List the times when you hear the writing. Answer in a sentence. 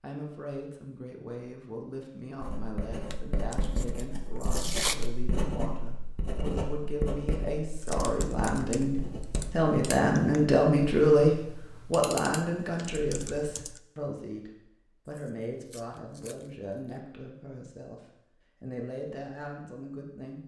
You can hear the writing from 2.4 to 9.7 s.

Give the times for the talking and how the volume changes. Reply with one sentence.
You can hear the talking from 0.0 to 20.4 s, getting louder then quieter.